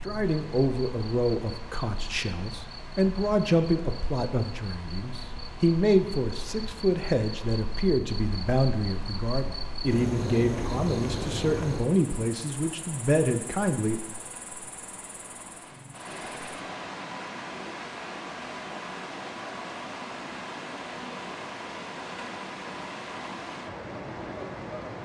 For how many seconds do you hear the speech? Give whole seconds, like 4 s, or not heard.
14 s.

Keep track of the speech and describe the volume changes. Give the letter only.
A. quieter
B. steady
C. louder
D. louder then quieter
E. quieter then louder
B.